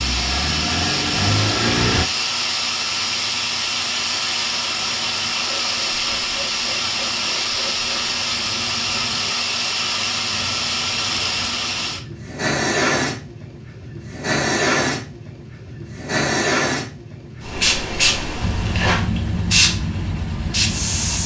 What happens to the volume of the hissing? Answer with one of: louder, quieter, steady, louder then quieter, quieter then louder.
steady.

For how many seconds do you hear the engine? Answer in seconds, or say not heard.
5 s.